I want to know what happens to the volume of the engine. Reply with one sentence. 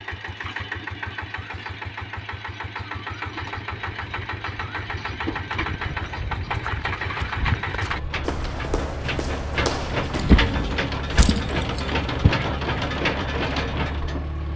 The loudness of the engine goes up.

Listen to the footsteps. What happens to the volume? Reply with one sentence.
The volume of the footsteps goes up.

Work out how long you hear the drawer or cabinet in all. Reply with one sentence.
The drawer or cabinet can be heard for 2 seconds in total.